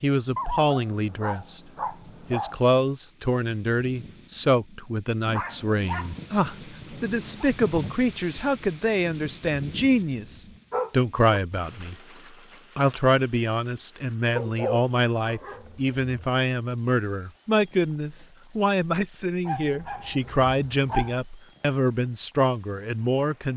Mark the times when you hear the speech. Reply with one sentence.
The speech can be heard from 0.0 to 1.6 s, from 2.3 to 11.9 s and from 12.8 to 23.5 s.